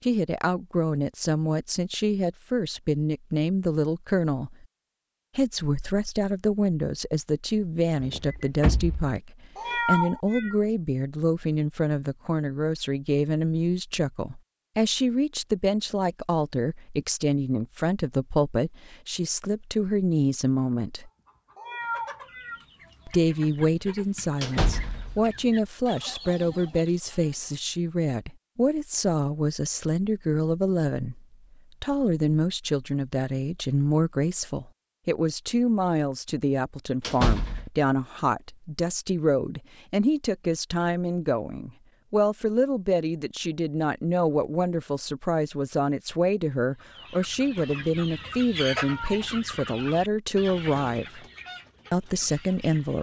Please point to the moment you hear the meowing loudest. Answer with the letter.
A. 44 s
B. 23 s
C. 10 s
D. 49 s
C.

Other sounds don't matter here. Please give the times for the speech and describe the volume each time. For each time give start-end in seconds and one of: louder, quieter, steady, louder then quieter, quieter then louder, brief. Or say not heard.
0.0-4.7 steady
5.3-21.1 steady
23.1-51.2 steady
51.9-52.9 brief.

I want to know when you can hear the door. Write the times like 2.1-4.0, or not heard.
8.0-9.2, 24.4-25.2, 37.0-37.7.